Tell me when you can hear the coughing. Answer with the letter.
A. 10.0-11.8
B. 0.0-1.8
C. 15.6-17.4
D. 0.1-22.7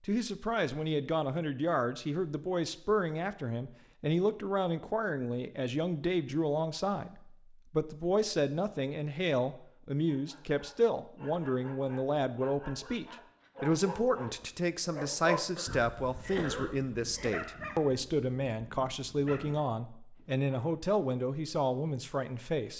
C.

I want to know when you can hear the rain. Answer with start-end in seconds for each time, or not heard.
not heard.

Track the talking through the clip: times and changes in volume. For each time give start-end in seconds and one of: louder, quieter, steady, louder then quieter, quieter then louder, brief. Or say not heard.
0.1-22.7 steady.